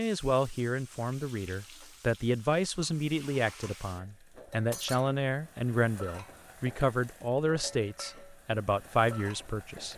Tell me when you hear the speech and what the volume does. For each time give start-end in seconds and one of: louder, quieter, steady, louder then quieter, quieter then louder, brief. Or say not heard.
0.0-9.9 steady.